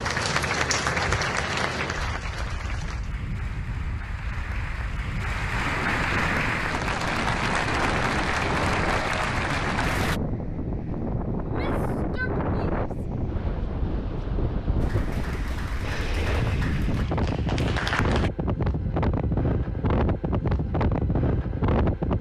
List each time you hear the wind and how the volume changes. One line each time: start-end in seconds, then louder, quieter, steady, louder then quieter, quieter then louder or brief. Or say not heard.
0.0-22.1 louder.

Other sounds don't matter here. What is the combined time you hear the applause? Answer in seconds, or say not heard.
14 s.